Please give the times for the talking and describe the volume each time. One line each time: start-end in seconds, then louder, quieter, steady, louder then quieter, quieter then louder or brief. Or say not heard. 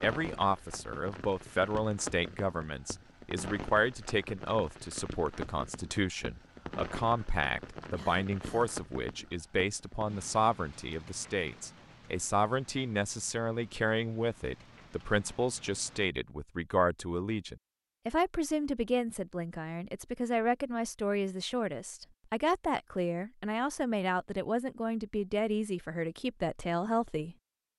0.0-27.7 steady.